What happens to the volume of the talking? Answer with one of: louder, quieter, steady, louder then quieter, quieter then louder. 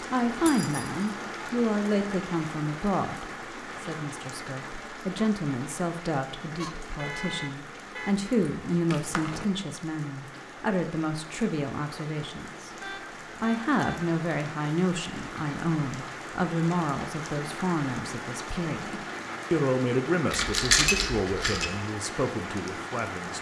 steady.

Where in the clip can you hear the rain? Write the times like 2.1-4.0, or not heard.
0.0-23.3.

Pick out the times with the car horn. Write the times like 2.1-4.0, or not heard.
6.6-8.3, 12.8-14.0.